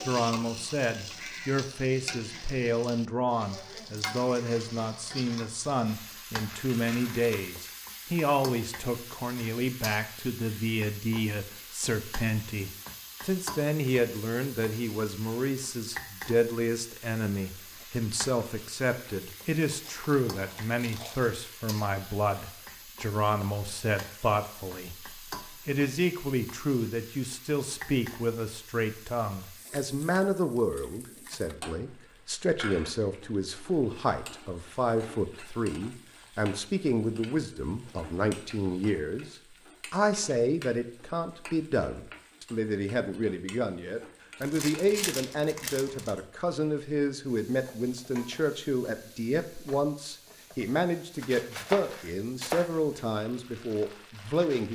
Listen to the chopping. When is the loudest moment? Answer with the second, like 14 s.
52 s.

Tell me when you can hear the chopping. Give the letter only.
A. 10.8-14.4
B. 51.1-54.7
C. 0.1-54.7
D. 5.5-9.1
B.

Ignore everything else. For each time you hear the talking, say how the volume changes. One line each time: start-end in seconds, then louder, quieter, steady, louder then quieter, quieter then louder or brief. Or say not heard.
0.1-54.7 steady.